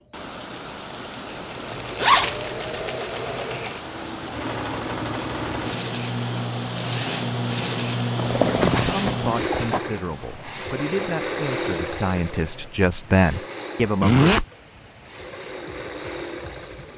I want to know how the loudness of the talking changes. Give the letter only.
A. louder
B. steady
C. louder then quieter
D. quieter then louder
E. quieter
A.